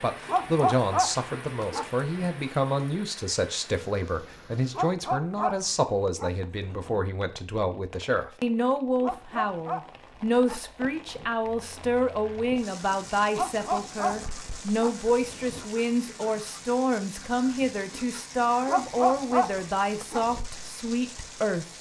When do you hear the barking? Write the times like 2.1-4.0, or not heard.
0.2-2.3, 4.7-7.0, 9.0-11.3, 13.3-15.7, 18.6-20.2.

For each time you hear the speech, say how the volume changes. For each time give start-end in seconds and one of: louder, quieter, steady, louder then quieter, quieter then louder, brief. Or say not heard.
0.0-21.7 steady.